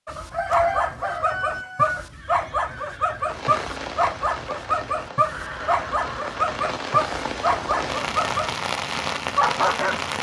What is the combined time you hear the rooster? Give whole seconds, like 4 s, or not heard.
2 s.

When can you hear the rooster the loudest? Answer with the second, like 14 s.
1 s.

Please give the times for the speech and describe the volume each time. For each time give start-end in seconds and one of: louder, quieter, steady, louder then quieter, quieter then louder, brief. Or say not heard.
not heard.